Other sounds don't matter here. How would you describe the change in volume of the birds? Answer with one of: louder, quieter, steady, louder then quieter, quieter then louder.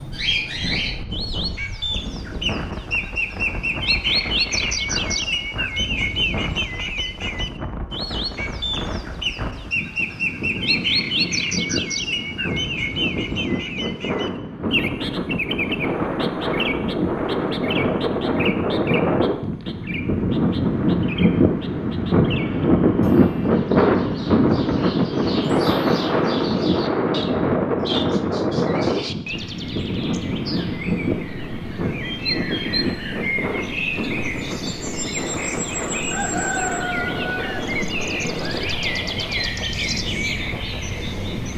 quieter then louder.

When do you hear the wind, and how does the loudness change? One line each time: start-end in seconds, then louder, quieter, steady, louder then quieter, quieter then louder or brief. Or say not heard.
0.1-41.5 louder then quieter.